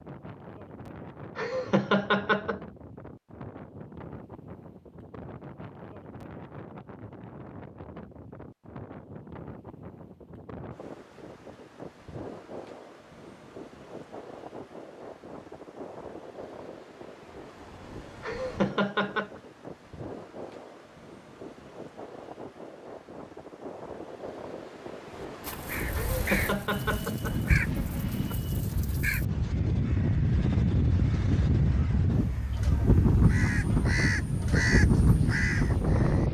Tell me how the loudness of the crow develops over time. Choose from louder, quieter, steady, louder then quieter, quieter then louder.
quieter then louder.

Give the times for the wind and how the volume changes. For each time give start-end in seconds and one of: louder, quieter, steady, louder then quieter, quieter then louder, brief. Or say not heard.
0.0-36.3 louder.